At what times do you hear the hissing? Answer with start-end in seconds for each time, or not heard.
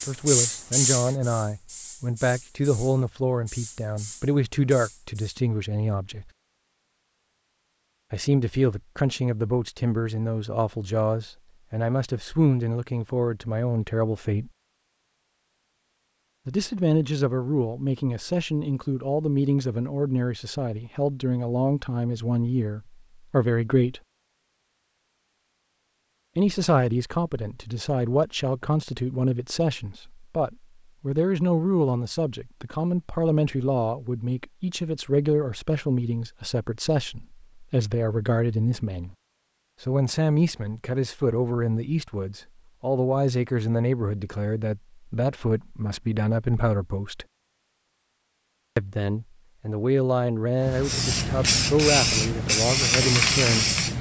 0.0-5.4, 50.6-53.9.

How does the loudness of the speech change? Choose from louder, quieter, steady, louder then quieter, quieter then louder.
steady.